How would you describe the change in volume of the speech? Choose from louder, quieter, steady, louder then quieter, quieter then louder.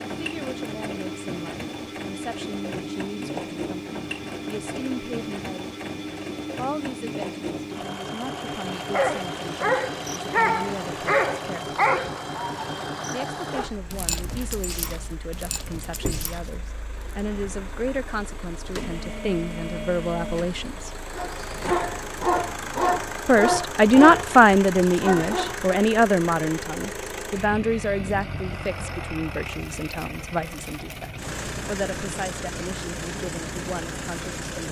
louder then quieter.